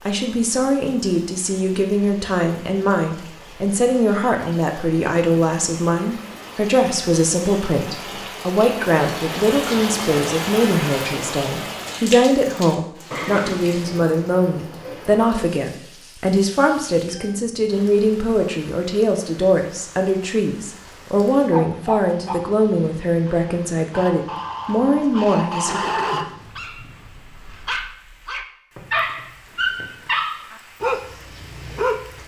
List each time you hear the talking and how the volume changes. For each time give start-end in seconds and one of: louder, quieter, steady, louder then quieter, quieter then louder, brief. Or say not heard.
0.1-25.8 steady.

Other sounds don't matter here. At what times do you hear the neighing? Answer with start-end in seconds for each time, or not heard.
13.1-14.0, 25.6-26.3.